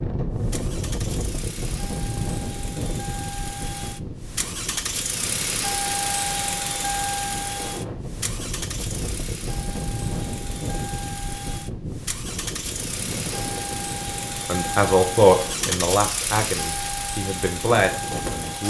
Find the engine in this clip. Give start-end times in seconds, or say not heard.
0.1-18.6.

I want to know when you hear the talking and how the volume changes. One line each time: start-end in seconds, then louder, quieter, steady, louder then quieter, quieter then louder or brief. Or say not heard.
14.4-18.6 quieter then louder.